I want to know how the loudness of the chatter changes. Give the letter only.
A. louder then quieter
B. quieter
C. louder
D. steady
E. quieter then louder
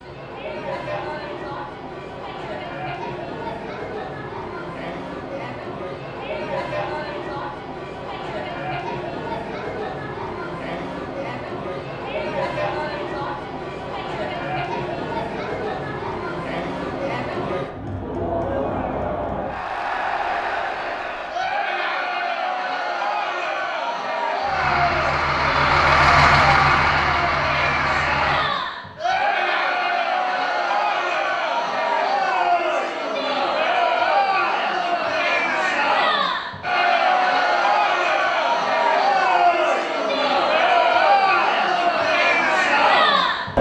C.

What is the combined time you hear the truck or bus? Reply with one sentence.
The truck or bus can be heard for 4 seconds in total.